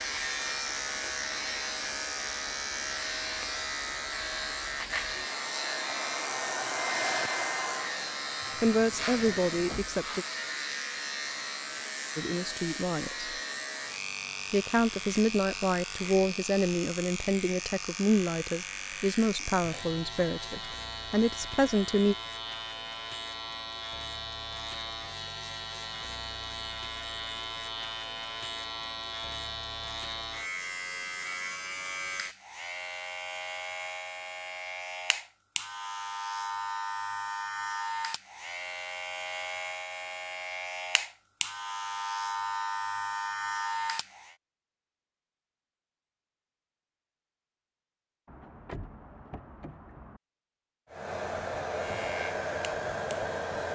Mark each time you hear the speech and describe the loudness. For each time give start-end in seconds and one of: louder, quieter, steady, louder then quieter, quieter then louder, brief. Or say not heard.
8.6-10.2 brief
12.2-13.3 brief
14.5-22.1 steady.